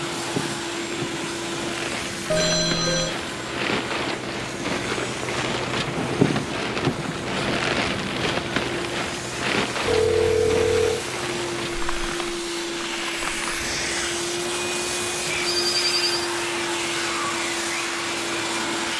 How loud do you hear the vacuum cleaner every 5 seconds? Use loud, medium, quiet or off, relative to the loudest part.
medium, medium, loud, loud.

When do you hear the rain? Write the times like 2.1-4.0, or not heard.
0.0-18.9.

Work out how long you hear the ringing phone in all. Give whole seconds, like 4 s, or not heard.
3 s.